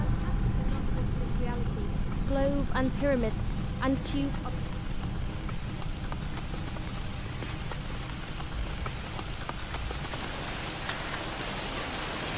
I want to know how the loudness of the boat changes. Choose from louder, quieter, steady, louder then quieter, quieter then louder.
quieter.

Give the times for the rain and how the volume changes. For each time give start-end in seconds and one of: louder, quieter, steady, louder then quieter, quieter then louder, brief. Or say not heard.
0.0-12.3 louder.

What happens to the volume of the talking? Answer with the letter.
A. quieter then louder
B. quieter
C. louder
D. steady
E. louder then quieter
C.